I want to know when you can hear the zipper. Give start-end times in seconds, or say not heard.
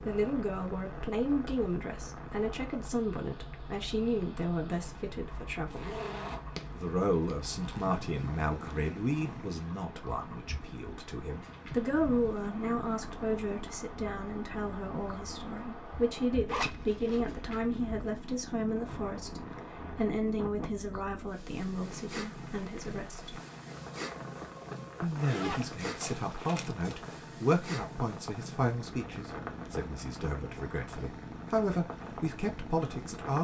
5.7-7.9, 16.4-17.4, 25.1-27.0.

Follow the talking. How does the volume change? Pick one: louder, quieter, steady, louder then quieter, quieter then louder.
steady.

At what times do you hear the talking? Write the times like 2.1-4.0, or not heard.
0.0-5.9, 6.8-23.4, 25.0-33.3.